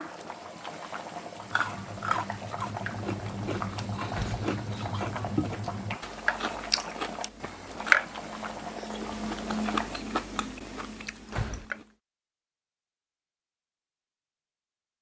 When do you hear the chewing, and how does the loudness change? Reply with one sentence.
You can hear the chewing from 1.4 to 11.8 s, getting louder then quieter.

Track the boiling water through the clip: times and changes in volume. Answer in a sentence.
You can hear the boiling water from 0.0 to 10.0 s, at a steady volume.